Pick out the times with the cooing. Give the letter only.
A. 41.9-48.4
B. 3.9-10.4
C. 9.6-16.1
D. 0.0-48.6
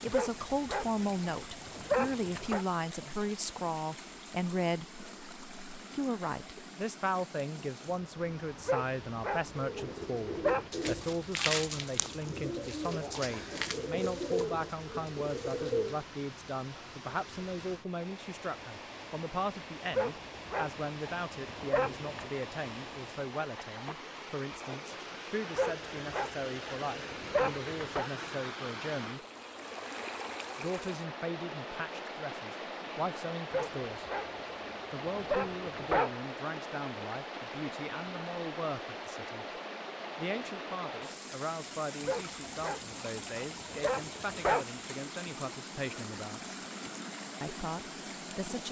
C.